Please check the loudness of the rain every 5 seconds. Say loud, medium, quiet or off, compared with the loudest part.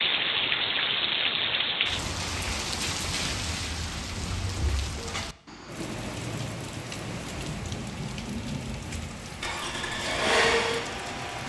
loud, medium, medium.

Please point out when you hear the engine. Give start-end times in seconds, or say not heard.
9.2-11.4.